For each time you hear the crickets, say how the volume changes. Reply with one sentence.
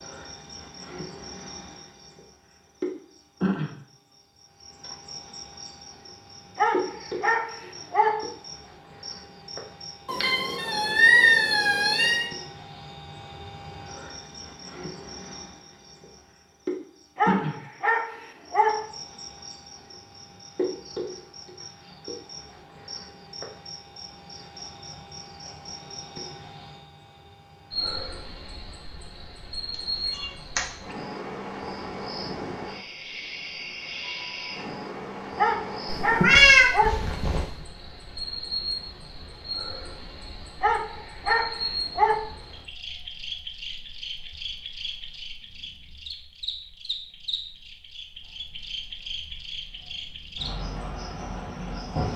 The crickets can be heard from 0.0 to 52.1 s, at a steady volume.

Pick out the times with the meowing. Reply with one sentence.
The meowing can be heard from 10.1 to 12.3 s, from 30.1 to 30.6 s and from 36.0 to 37.5 s.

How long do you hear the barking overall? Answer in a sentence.
The barking can be heard for 7 seconds in total.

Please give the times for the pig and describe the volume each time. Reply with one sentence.
The pig can't be heard in this clip.